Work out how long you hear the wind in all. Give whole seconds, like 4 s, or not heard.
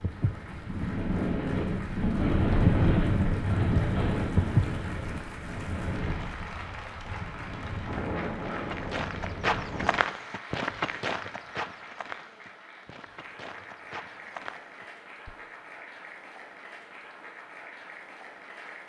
10 s.